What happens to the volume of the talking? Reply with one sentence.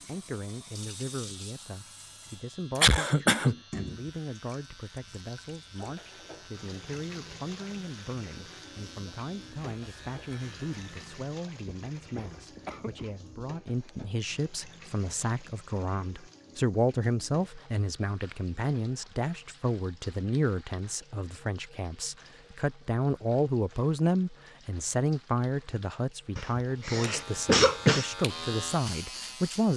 The loudness of the talking goes up.